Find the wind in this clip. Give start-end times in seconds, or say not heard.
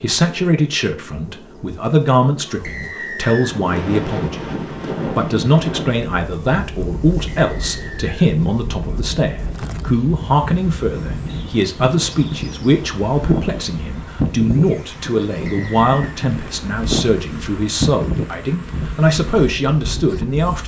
3.3-20.6.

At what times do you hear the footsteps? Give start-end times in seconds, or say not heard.
not heard.